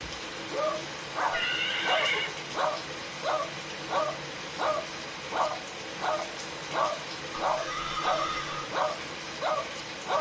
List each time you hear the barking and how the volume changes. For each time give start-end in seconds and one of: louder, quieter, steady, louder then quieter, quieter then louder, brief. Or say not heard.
0.0-10.1 steady.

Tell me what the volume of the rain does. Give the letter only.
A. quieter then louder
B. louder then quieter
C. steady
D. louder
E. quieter
C.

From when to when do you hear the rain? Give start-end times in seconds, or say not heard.
0.0-10.1.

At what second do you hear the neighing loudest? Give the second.
2 s.